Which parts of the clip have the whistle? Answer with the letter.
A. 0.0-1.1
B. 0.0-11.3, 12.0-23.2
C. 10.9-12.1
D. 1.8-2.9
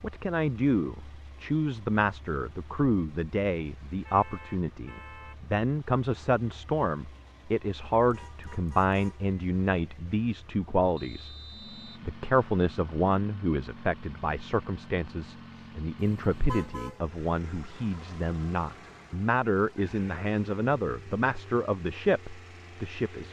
C.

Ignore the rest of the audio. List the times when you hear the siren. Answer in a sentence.
The siren can't be heard in this clip.